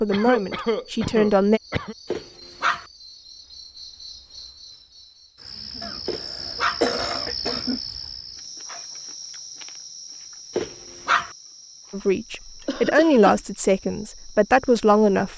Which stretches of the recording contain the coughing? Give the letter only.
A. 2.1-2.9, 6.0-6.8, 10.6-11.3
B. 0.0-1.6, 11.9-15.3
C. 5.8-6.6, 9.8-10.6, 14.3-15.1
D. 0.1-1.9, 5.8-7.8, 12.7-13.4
D.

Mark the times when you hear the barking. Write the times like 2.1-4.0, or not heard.
2.1-2.9, 6.0-6.8, 10.6-11.3.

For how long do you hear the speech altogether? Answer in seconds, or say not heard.
5 s.